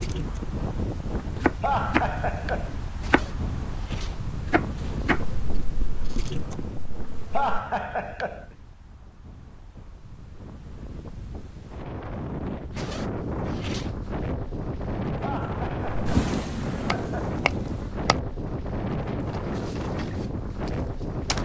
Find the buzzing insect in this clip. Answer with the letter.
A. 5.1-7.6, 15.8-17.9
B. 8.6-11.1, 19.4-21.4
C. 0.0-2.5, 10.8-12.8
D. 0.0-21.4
A.